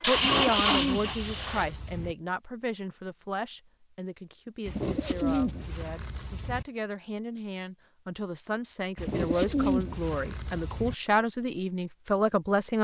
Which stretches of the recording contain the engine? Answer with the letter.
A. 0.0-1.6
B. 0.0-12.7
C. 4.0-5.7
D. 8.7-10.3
A.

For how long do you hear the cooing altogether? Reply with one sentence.
You can hear the cooing for 6 seconds altogether.